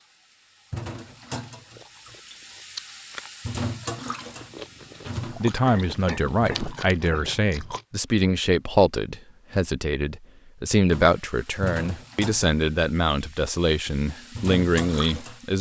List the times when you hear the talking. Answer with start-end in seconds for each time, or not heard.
5.3-15.5.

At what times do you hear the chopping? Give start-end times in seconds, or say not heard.
not heard.